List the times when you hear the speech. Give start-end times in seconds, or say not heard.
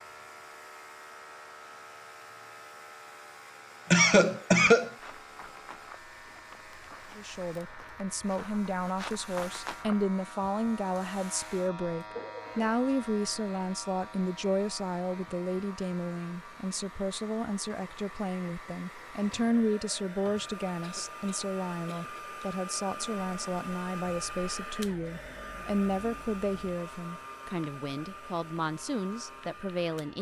7.2-30.1.